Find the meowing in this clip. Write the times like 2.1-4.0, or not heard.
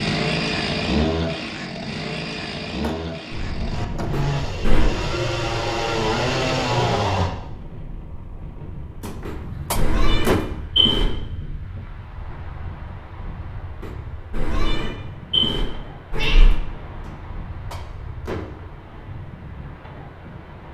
4.1-4.9, 9.2-11.2, 13.8-16.6.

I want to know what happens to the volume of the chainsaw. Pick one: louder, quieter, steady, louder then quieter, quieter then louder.
quieter then louder.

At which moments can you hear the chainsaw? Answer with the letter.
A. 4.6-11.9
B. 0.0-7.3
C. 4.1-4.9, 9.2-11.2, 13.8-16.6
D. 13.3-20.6
B.